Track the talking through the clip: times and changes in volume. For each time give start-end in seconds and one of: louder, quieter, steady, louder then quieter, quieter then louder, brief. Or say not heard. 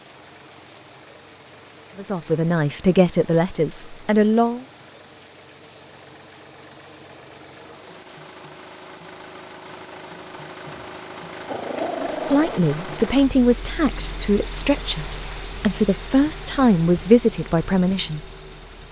1.9-4.7 brief
11.9-18.2 quieter then louder.